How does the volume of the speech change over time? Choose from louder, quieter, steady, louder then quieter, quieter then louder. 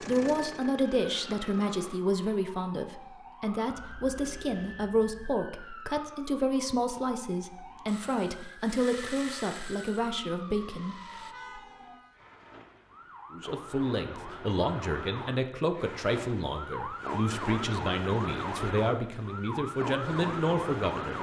steady.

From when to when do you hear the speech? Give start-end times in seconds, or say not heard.
0.0-10.9, 13.3-21.1.